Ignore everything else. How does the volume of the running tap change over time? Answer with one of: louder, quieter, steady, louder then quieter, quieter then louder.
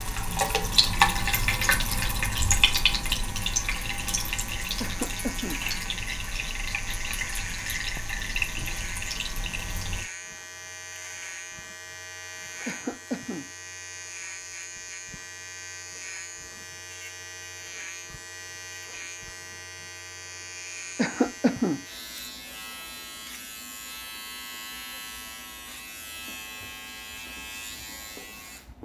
quieter.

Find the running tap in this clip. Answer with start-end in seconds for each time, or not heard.
0.0-10.1.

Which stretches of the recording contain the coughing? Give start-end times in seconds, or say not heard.
4.8-5.7, 12.7-13.5, 20.9-21.8.